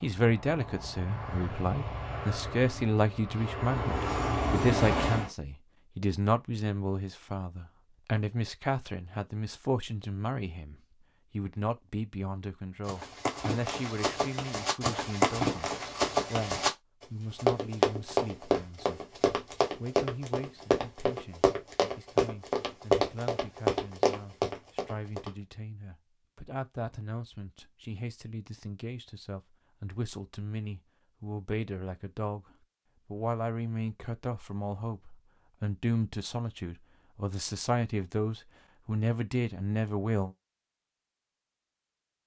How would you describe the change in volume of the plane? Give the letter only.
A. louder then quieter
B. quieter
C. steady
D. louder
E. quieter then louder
D.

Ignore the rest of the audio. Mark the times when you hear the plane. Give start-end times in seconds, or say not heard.
0.0-5.3.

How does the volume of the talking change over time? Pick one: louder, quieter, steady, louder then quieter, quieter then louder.
quieter then louder.